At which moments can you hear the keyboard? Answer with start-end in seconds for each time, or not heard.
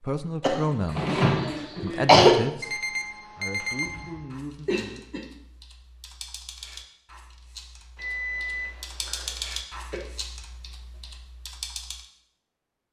3.5-12.1.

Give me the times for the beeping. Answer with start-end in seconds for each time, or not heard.
2.6-4.3, 8.0-9.4.